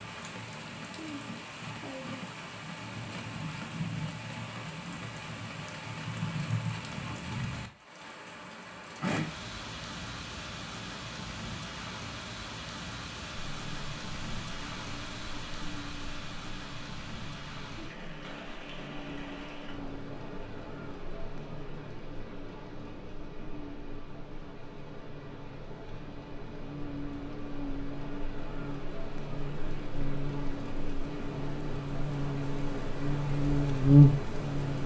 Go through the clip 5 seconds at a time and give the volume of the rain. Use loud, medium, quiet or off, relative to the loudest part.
loud, loud, loud, medium, medium, medium, loud.